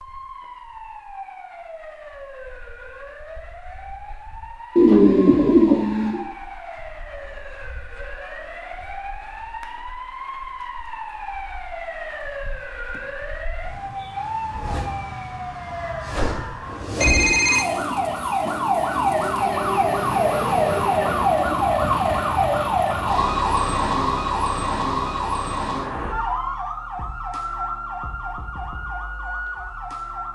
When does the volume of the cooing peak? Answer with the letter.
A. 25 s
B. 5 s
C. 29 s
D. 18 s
B.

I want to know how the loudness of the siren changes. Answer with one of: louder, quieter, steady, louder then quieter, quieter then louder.
louder then quieter.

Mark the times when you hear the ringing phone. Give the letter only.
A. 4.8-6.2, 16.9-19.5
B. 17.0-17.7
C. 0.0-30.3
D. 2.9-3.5
B.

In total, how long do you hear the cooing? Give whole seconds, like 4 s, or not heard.
4 s.